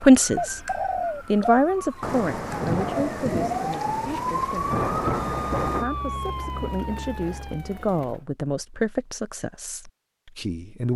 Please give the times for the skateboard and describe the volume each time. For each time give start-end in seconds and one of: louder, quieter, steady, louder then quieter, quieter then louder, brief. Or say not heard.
not heard.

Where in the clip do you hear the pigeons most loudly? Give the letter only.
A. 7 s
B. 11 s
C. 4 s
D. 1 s
D.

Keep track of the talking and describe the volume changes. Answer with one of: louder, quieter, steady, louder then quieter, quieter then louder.
quieter then louder.